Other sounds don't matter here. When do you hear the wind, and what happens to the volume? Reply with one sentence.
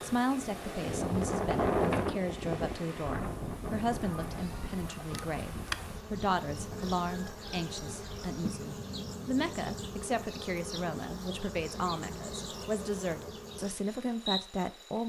The wind can be heard from 0.0 to 9.9 s, getting quieter.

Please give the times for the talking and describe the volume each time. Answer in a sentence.
The talking can be heard from 0.0 to 15.0 s, at a steady volume.